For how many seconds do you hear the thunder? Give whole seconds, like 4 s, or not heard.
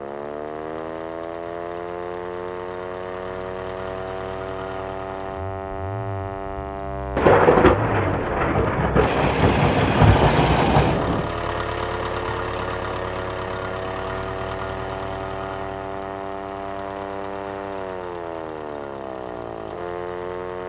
4 s.